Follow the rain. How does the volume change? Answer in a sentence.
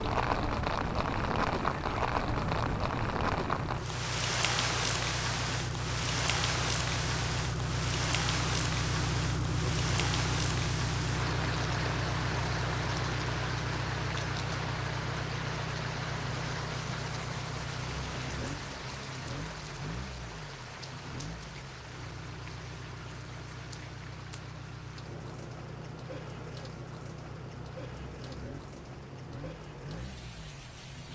The loudness of the rain goes down.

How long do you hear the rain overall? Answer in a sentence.
You can hear the rain for 31 seconds altogether.